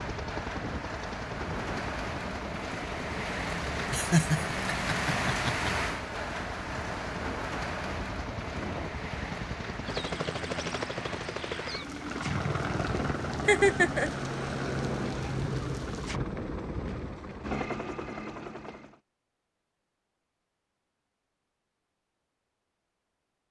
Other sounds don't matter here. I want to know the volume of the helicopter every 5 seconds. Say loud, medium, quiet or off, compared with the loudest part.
medium, medium, loud, loud, off.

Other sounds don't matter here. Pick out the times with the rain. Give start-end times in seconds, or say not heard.
0.0-16.2.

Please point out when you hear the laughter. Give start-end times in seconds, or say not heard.
3.9-5.7, 13.4-14.1.